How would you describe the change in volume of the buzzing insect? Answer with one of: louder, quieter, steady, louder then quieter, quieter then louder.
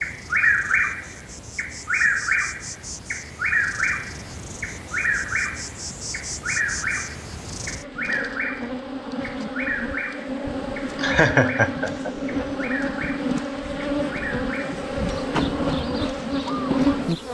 louder.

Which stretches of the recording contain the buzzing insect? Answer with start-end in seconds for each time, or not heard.
0.0-17.2.